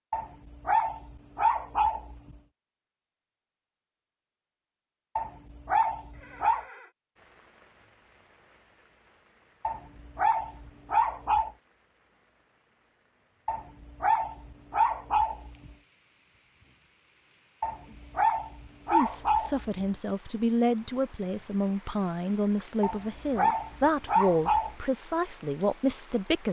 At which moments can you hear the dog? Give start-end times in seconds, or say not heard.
0.1-2.4, 5.2-6.7, 9.6-11.5, 13.4-15.7, 17.6-19.9, 22.8-24.8.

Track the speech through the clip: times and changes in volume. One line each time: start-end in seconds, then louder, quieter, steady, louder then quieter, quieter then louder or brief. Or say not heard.
18.9-26.4 steady.